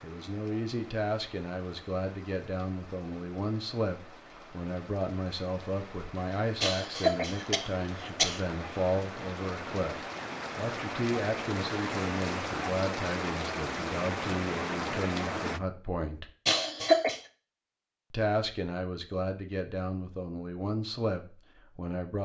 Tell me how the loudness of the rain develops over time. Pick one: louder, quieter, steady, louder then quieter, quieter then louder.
louder.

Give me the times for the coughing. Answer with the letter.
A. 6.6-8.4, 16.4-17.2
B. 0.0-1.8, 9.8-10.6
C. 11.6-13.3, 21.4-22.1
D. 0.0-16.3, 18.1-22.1
A.